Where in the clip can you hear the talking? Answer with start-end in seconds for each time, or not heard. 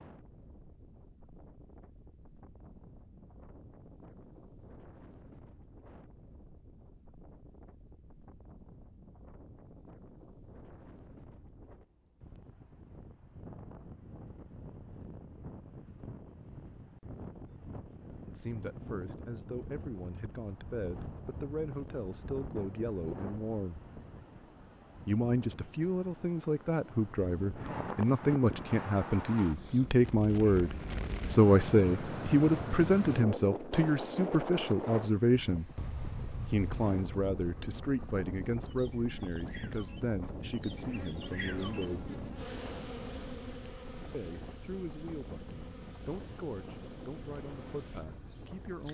18.2-23.8, 25.1-35.7, 36.5-42.1, 44.1-48.8.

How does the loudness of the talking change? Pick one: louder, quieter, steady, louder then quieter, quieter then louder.
louder then quieter.